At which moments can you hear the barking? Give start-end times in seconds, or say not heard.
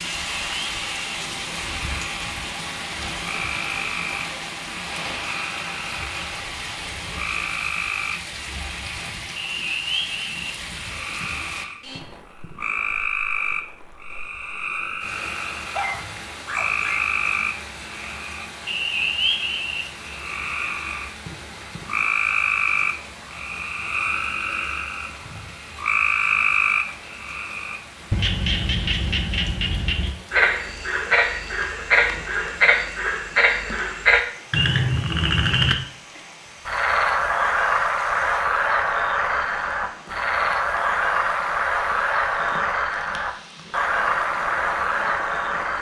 15.5-17.0.